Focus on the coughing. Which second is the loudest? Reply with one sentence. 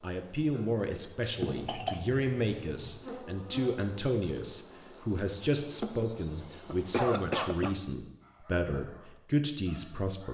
The volume of the coughing peaks at 7 seconds.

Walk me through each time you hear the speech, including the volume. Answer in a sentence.
The speech can be heard from 0.0 to 10.2 s, at a steady volume.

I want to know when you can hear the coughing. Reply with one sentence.
You can hear the coughing from 1.4 to 3.0 s and from 6.7 to 7.8 s.